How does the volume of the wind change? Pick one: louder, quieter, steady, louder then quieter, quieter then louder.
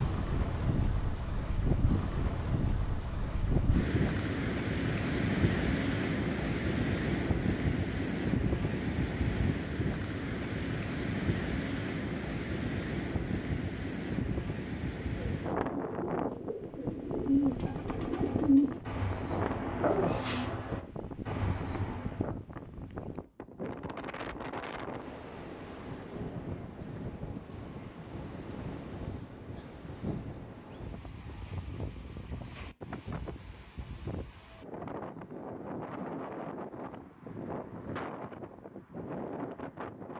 quieter.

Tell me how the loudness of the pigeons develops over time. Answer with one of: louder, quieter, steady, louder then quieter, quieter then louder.
louder then quieter.